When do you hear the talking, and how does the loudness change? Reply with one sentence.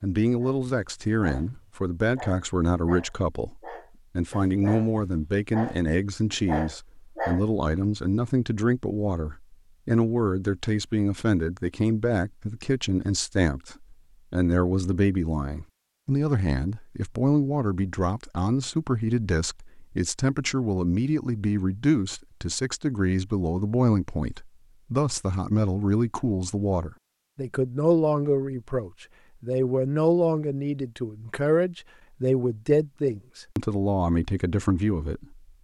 The talking can be heard from 0.0 to 35.4 s, at a steady volume.